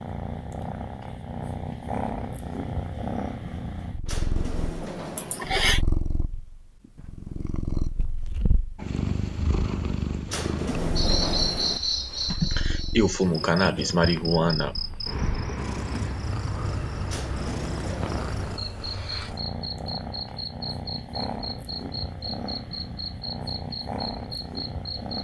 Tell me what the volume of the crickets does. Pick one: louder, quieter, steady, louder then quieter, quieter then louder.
quieter.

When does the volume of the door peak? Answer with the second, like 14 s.
11 s.